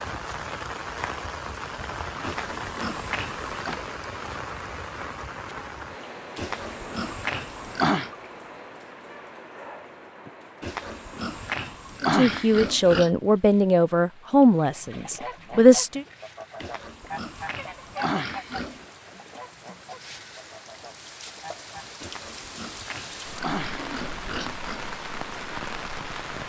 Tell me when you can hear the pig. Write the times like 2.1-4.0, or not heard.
2.2-3.8, 6.3-8.1, 10.6-13.1, 16.6-18.9, 22.0-24.8.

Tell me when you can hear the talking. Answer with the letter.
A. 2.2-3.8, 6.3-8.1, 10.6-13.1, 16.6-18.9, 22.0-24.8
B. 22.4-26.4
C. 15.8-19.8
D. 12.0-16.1
D.